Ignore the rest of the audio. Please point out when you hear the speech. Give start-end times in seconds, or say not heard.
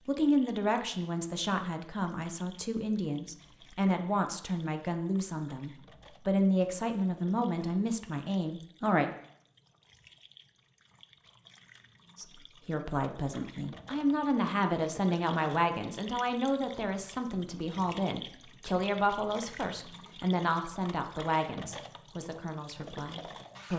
0.1-9.1, 12.2-23.7.